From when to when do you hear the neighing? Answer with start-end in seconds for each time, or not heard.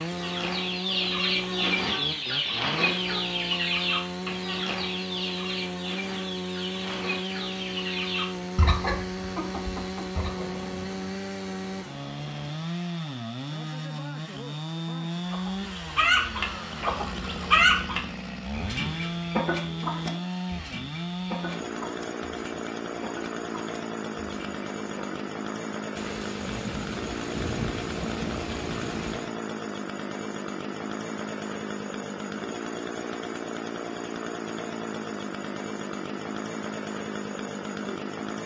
not heard.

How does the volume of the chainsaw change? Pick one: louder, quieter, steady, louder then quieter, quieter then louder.
steady.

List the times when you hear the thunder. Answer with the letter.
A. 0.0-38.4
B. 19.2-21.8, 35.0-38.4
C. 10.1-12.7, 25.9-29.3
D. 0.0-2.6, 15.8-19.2
C.